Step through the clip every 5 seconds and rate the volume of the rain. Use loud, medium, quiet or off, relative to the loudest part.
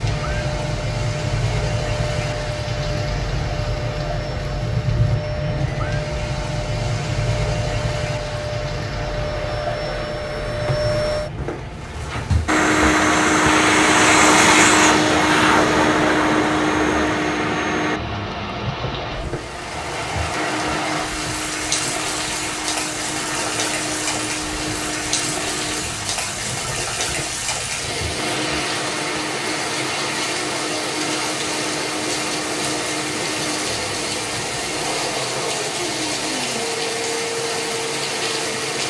loud, loud, medium, medium, loud, loud, loud, loud.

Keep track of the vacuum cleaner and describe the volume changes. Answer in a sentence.
The volume of the vacuum cleaner goes up, then down.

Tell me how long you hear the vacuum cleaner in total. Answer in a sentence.
You can hear the vacuum cleaner for 39 seconds altogether.